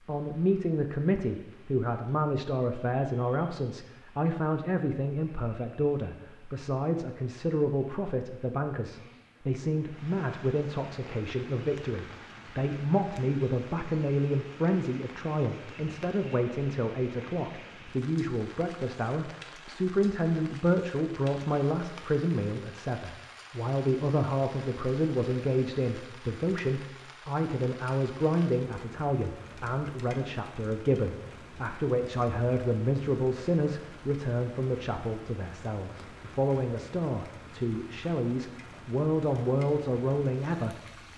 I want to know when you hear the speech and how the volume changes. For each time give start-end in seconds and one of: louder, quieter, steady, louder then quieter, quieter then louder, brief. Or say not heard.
0.1-40.8 steady.